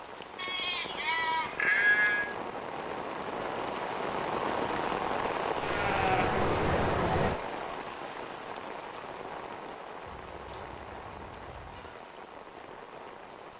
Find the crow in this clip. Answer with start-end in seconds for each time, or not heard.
not heard.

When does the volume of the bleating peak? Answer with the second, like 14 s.
2 s.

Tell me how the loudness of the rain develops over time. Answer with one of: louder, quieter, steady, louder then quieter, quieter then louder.
louder then quieter.